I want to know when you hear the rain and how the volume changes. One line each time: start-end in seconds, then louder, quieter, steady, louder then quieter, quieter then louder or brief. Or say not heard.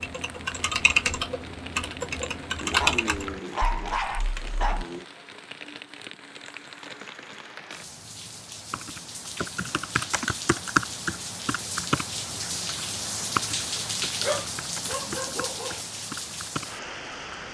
0.0-17.4 louder.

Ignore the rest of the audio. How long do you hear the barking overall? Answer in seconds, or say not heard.
4 s.